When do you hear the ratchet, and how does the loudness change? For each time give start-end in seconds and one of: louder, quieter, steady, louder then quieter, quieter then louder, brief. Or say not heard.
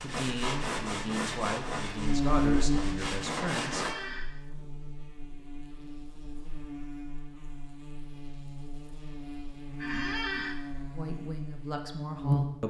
not heard.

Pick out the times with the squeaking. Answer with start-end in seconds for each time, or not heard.
3.5-4.3, 9.8-10.6.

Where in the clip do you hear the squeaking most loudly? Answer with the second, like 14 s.
10 s.